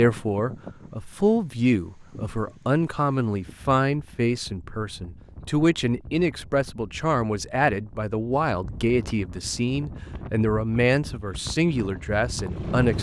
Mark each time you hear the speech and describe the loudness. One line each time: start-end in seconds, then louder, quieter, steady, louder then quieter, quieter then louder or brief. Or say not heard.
0.0-12.9 steady.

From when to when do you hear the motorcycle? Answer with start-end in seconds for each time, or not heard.
11.2-12.9.